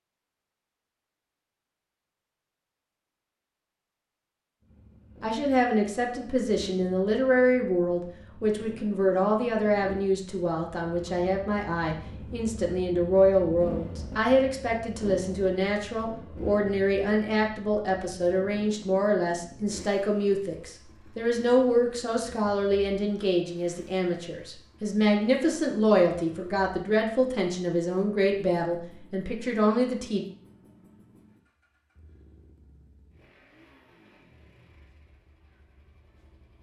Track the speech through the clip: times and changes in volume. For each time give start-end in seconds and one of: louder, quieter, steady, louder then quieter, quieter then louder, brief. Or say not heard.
5.2-30.2 steady.